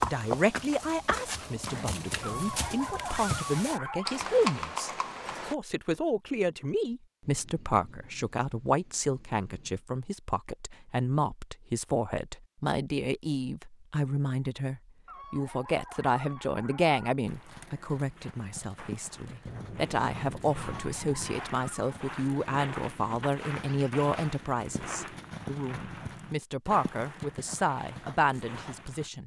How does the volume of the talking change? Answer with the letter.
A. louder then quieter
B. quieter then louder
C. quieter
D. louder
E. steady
E.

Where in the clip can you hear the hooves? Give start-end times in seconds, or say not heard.
0.0-5.5, 17.2-29.1.